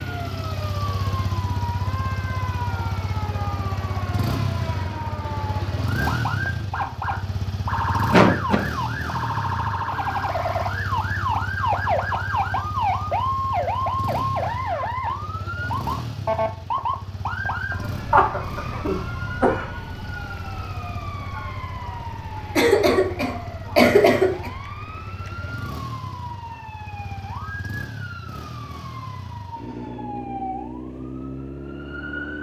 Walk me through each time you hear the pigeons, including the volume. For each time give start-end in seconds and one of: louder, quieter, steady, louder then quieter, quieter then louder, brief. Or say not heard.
not heard.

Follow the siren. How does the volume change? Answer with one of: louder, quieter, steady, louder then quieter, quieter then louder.
louder then quieter.